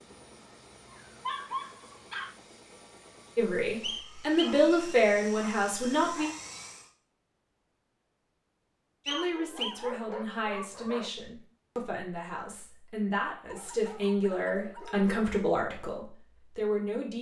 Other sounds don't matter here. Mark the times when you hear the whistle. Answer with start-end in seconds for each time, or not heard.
3.8-4.5, 9.1-9.8.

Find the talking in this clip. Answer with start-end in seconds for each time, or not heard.
3.4-6.3, 9.1-17.1.